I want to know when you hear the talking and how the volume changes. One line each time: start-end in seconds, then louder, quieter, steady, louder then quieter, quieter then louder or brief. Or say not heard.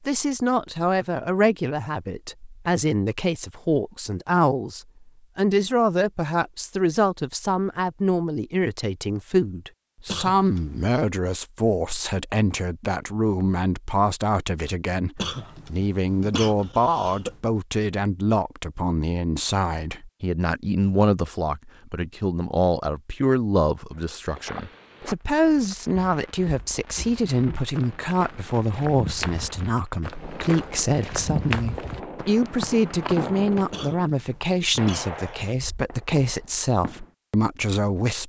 0.1-38.2 steady.